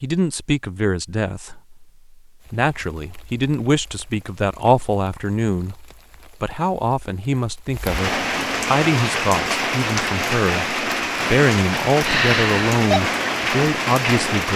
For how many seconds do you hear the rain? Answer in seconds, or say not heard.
12 s.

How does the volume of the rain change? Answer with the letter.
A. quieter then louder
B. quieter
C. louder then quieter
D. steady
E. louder
E.